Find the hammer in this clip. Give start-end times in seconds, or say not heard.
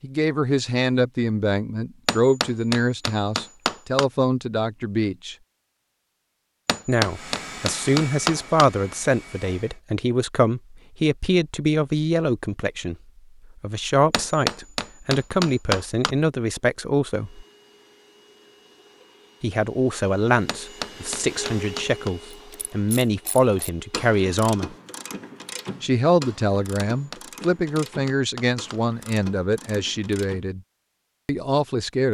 2.0-4.0, 6.7-8.7, 14.1-16.1, 20.4-22.1, 26.8-28.8.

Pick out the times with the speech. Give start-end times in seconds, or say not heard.
0.0-5.3, 6.8-12.9, 13.6-17.4, 19.4-24.8, 25.8-30.6, 31.2-32.1.